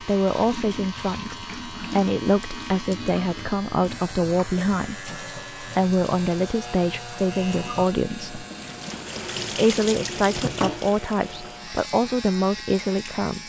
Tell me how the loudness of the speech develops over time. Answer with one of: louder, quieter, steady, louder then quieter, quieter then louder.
steady.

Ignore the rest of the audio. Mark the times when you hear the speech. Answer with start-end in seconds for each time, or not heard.
0.0-8.4, 9.6-13.4.